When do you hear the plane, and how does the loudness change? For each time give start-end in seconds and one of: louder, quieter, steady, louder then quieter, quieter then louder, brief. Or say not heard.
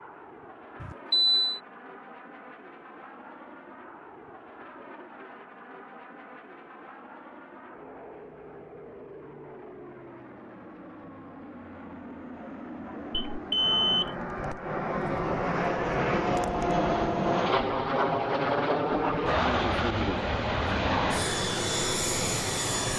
0.0-22.9 louder.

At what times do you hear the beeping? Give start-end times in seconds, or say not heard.
0.8-1.6, 13.2-14.2.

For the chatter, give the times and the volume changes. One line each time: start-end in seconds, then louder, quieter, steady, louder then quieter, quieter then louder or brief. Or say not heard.
not heard.